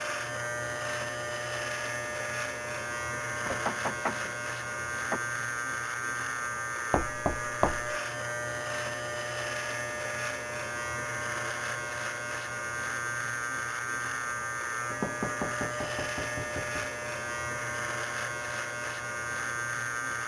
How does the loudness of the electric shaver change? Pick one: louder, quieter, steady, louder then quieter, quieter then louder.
steady.